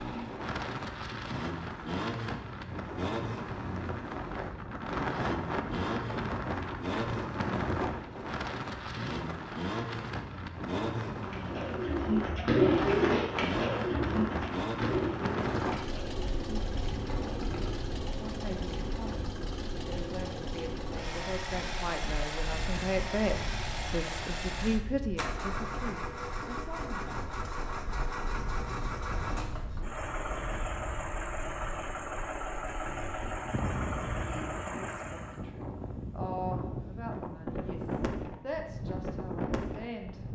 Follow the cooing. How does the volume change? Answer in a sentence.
The volume of the cooing goes down.